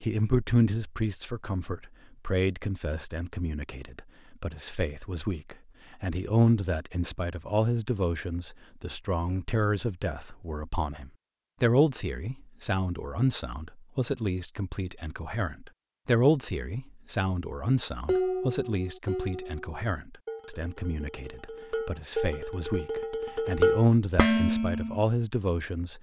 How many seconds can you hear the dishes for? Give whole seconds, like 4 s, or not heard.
7 s.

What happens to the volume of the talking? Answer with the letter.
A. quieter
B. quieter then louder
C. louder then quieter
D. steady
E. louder
D.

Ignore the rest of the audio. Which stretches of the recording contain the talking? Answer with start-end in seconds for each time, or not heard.
0.0-25.9.